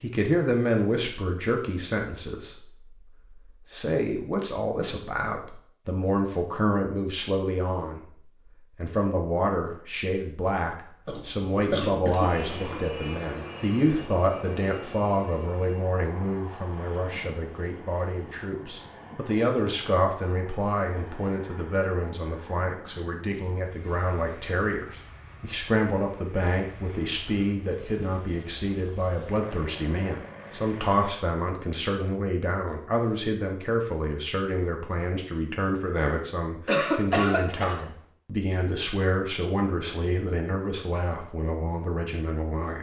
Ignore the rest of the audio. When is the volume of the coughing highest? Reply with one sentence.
The volume of the coughing peaks at 37 seconds.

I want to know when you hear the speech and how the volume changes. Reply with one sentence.
You can hear the speech from 0.0 to 8.0 s, getting quieter then louder; and from 8.8 to 42.7 s, at a steady volume.